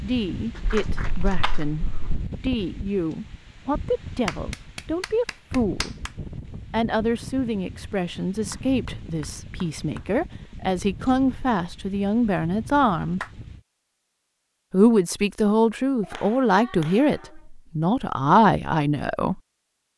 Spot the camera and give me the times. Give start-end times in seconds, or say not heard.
0.8-2.2.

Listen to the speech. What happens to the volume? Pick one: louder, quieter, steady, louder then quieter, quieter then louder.
louder.